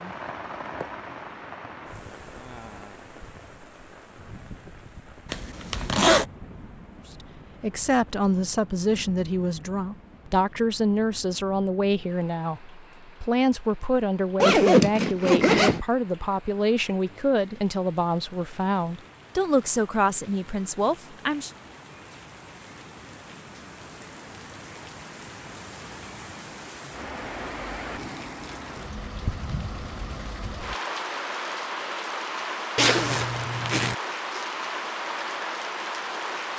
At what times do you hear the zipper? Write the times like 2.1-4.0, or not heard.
5.3-6.2, 14.4-15.8, 32.8-34.0.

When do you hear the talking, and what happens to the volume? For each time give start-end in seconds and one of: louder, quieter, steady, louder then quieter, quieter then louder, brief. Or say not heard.
7.2-21.5 steady.